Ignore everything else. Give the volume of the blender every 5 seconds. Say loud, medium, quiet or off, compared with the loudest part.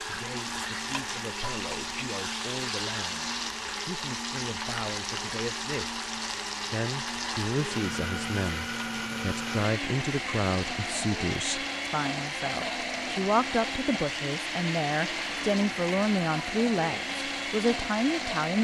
medium, loud, loud, loud.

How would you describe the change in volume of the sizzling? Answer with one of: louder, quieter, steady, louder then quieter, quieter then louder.
quieter.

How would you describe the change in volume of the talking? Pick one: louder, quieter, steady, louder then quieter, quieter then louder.
louder.